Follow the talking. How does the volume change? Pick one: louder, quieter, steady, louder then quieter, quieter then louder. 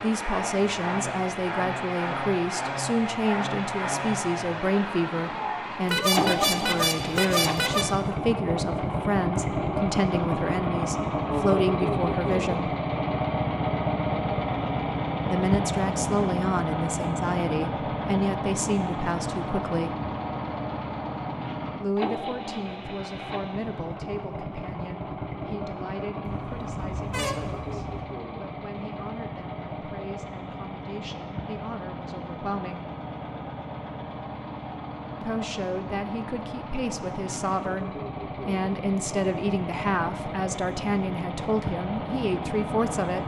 quieter then louder.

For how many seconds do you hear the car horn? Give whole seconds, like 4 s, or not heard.
4 s.